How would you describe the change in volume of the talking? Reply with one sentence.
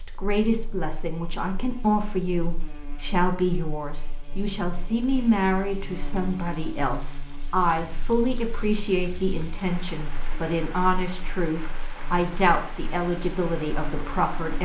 The loudness of the talking stays about the same.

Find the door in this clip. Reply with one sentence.
You can't hear the door here.